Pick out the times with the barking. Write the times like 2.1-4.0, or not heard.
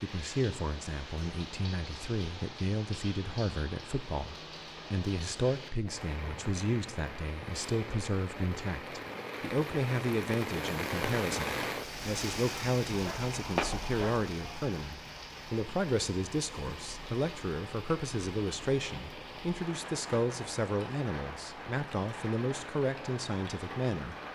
12.9-14.2.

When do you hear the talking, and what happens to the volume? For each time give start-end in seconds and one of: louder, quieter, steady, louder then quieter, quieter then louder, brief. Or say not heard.
0.0-24.1 steady.